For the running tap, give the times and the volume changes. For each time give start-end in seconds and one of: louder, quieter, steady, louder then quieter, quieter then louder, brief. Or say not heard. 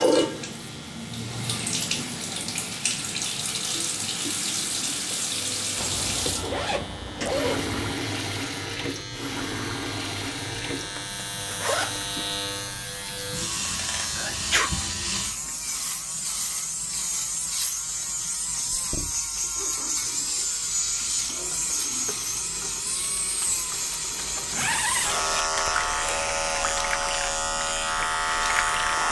0.0-29.0 quieter then louder.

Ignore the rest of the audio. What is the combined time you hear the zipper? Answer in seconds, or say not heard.
5 s.